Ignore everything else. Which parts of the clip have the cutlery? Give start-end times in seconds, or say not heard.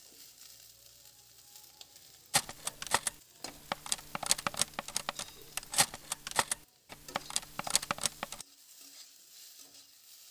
2.3-8.4.